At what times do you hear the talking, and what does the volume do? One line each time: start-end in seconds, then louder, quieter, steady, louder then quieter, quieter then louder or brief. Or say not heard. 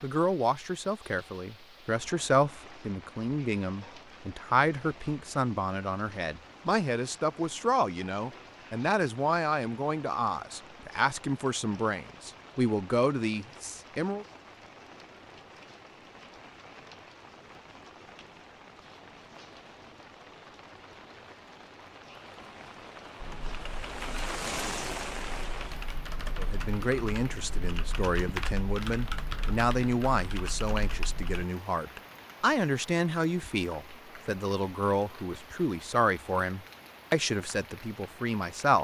0.0-14.2 steady
26.4-38.7 steady.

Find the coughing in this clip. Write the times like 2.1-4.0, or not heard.
not heard.